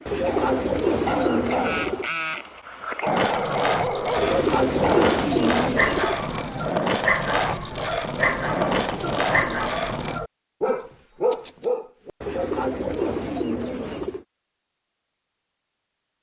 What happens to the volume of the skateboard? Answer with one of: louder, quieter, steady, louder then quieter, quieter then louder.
steady.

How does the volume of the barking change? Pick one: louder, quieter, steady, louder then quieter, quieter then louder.
steady.